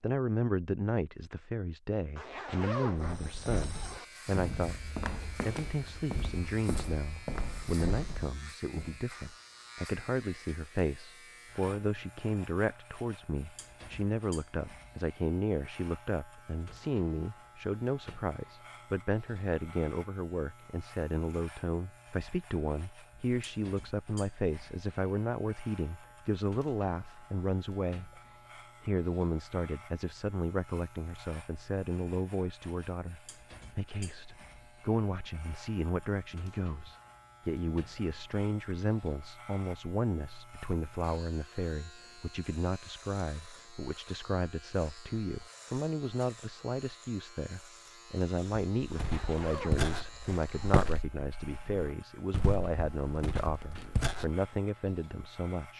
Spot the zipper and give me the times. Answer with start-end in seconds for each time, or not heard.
2.1-4.0, 49.0-50.6.